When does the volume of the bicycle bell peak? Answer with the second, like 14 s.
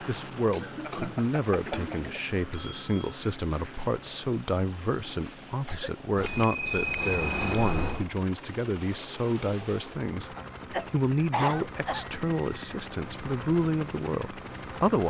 7 s.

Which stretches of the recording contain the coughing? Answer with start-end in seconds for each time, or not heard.
0.5-2.2, 5.7-6.8, 10.3-12.1.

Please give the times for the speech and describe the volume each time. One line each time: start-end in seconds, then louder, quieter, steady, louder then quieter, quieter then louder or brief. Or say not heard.
0.1-15.0 steady.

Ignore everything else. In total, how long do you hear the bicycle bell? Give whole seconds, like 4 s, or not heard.
5 s.